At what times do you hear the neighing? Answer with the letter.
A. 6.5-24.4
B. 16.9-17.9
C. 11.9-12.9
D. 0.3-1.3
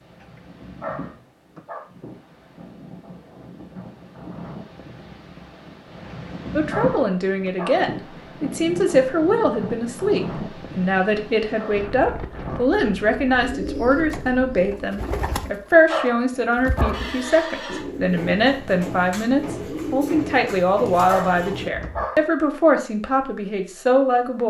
B.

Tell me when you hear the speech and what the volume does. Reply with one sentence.
You can hear the speech from 6.5 to 24.4 s, at a steady volume.